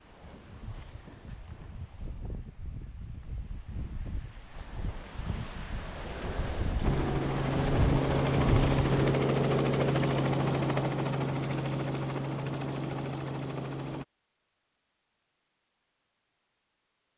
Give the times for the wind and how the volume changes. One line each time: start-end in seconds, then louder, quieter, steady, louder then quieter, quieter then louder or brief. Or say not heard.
0.0-9.2 louder.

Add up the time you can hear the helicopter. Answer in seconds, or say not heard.
7 s.